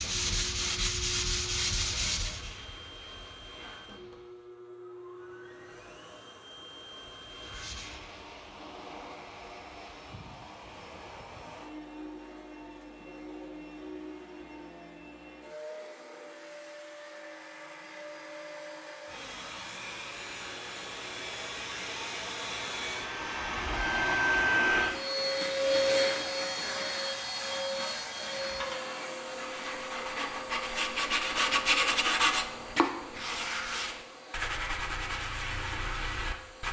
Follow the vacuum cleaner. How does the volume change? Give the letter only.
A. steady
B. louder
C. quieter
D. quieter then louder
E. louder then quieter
E.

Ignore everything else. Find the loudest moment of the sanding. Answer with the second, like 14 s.
32 s.